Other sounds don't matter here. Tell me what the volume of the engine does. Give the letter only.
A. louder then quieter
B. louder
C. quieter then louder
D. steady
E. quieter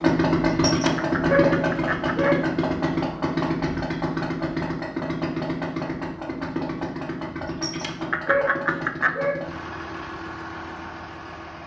E.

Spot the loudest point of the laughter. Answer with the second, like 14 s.
9 s.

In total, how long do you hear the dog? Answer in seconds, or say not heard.
4 s.